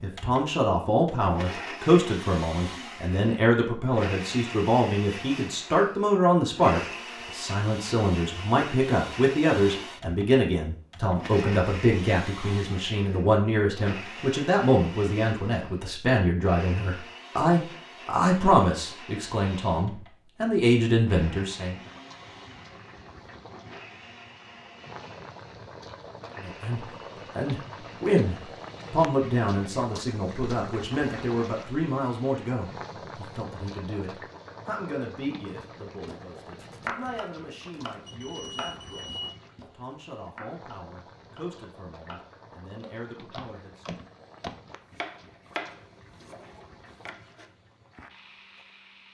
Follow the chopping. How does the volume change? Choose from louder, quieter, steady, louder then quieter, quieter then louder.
quieter then louder.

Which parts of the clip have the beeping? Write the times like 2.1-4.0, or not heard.
38.0-39.4.